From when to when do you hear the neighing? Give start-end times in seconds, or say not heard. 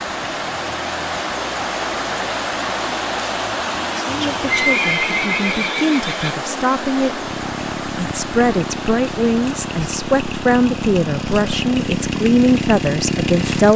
4.0-6.4.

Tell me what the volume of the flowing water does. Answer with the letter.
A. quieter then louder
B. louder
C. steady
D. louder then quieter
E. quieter
E.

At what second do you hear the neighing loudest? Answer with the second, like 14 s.
5 s.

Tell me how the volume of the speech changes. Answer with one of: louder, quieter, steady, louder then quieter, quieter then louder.
louder.